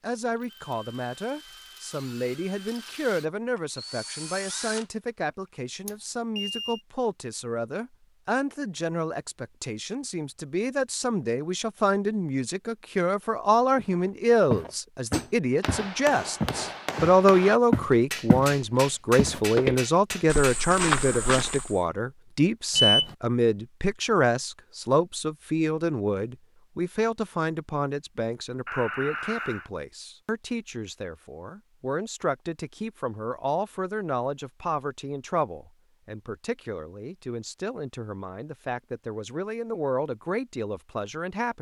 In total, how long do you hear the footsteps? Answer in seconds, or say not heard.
8 s.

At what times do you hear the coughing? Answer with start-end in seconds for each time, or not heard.
not heard.